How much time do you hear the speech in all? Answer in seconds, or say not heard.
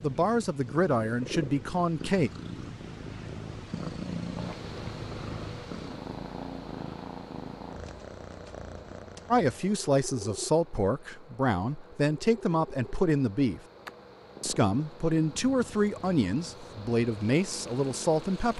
11 s.